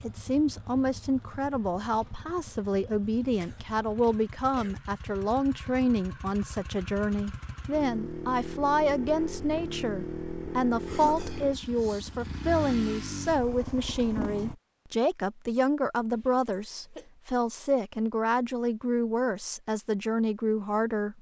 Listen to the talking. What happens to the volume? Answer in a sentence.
The volume of the talking stays about the same.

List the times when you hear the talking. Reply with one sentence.
You can hear the talking from 0.0 to 21.1 s.